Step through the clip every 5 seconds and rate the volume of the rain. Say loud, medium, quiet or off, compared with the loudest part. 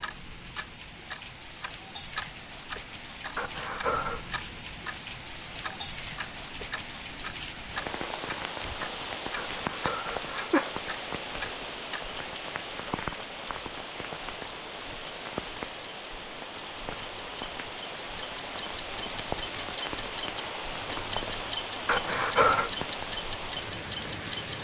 medium, loud, loud, loud, loud.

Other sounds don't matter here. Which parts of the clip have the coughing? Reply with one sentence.
The coughing can be heard from 3.4 to 4.3 s, from 9.3 to 10.8 s and from 21.9 to 22.7 s.